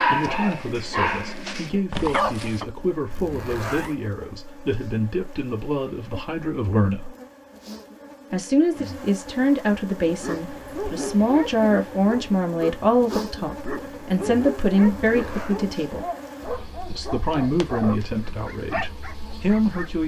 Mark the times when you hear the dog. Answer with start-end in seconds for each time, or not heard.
0.0-2.6, 10.0-19.9.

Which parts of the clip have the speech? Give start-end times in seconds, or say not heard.
0.0-7.1, 8.3-16.1, 16.9-20.0.